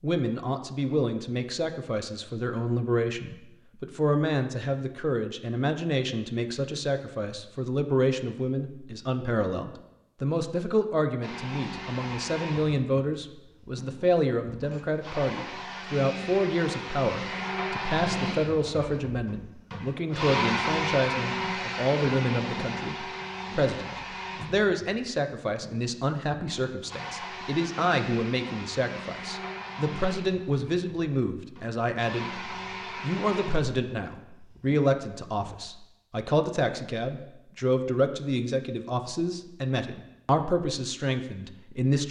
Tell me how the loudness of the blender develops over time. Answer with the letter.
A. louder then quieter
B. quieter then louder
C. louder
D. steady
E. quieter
A.